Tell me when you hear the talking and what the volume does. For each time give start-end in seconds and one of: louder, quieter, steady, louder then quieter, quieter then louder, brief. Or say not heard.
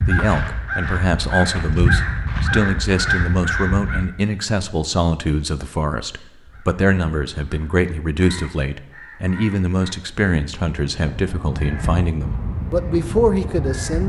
0.1-14.0 steady.